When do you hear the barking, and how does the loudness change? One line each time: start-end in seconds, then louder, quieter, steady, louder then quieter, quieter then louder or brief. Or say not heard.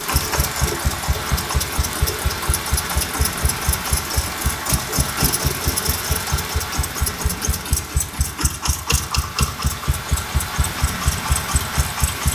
not heard.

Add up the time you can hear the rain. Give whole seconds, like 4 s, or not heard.
12 s.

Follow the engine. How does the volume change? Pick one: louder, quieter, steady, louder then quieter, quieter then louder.
steady.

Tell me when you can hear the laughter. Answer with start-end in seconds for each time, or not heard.
not heard.